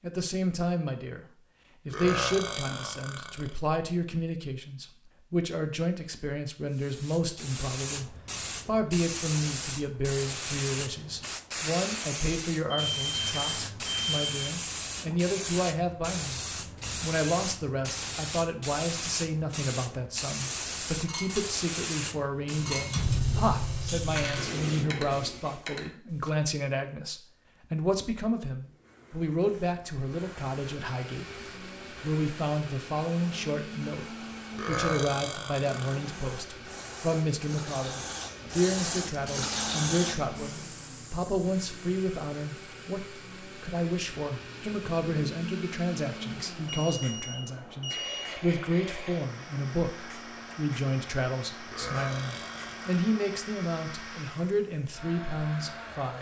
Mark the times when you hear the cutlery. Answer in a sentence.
The cutlery can be heard from 20.9 to 21.5 s and from 22.5 to 26.3 s.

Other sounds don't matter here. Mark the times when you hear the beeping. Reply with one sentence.
The beeping can be heard from 12.9 to 14.2 s and from 46.6 to 48.3 s.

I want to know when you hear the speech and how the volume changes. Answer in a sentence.
The speech can be heard briefly from 0.0 to 1.2 s; from 1.9 to 16.4 s, at a steady volume; and from 17.0 to 56.1 s, at a steady volume.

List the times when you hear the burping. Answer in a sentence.
The burping can be heard from 1.9 to 3.5 s, from 34.5 to 36.0 s and from 51.6 to 53.0 s.